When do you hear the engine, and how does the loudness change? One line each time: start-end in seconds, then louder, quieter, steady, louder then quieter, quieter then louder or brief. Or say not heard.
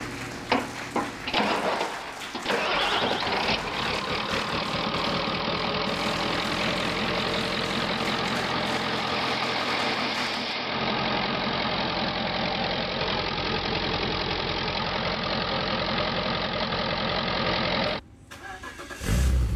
0.0-19.5 steady.